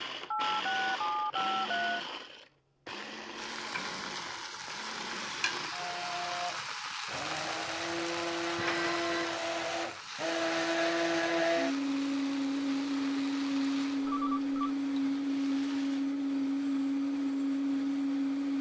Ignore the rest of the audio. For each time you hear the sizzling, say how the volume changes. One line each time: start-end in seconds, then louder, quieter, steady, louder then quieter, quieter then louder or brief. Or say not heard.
3.4-16.1 quieter.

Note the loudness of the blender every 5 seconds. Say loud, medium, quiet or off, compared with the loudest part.
medium, medium, loud, loud.